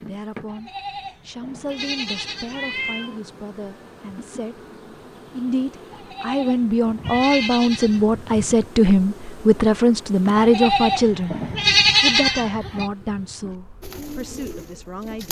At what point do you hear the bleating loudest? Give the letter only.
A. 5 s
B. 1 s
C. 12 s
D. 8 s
C.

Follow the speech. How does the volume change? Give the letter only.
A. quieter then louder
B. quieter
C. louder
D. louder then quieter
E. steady
D.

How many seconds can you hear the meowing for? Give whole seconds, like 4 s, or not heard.
2 s.